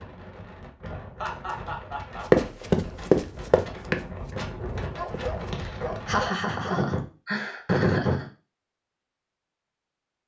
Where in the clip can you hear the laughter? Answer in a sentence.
You can hear the laughter from 1.2 to 2.2 s and from 5.5 to 8.2 s.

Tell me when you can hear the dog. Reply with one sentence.
The dog can be heard from 5.0 to 6.9 s.